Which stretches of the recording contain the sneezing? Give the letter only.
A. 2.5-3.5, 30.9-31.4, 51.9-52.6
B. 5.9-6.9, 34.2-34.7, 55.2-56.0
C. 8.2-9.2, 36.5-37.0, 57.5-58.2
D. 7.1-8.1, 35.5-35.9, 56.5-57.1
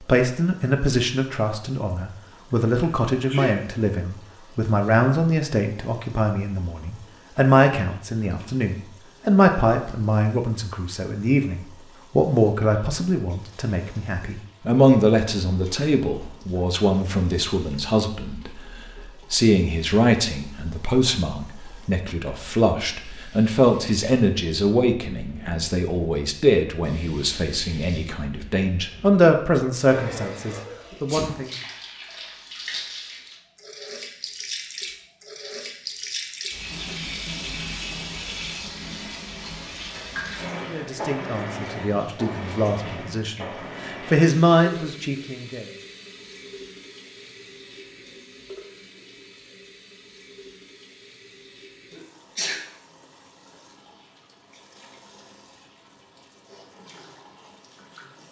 A.